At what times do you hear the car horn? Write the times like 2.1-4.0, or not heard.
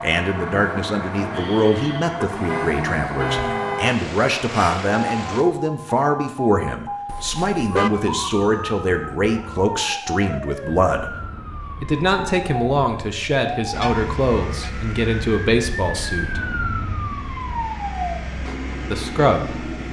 2.2-4.0, 7.0-7.9, 13.8-14.7.